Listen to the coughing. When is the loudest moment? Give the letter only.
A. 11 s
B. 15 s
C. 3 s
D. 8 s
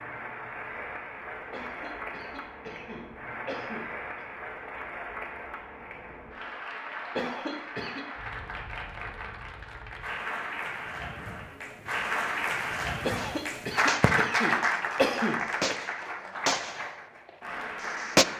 B.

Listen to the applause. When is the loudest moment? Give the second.
14 s.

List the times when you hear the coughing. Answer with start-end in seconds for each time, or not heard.
1.5-4.2, 7.2-8.1, 13.1-15.8.